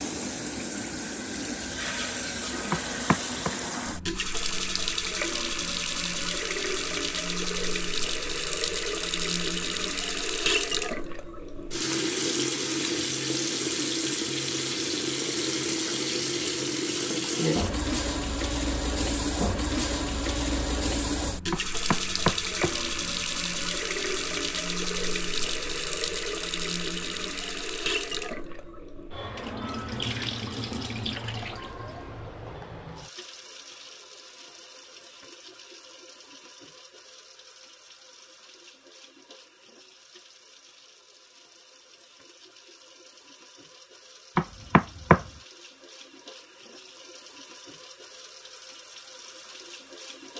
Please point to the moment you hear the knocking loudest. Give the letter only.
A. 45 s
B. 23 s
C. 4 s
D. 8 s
A.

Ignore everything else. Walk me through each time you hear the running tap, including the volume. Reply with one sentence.
The running tap can be heard from 0.0 to 50.3 s, getting quieter.